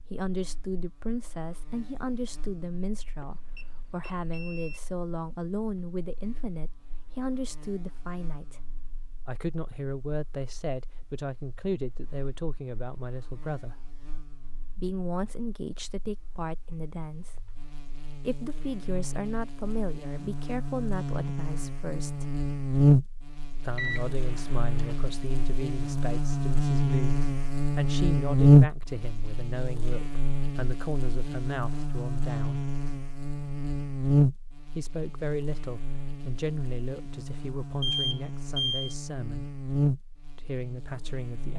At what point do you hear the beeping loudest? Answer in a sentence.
The volume of the beeping peaks at 38 seconds.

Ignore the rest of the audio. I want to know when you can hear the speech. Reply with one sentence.
The speech can be heard from 0.1 to 8.6 s, from 9.2 to 13.9 s, from 14.8 to 22.4 s, from 23.6 to 32.6 s, from 34.6 to 39.5 s and from 40.4 to 41.5 s.